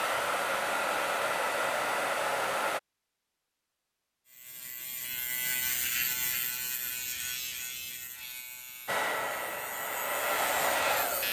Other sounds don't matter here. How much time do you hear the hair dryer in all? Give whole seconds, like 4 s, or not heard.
5 s.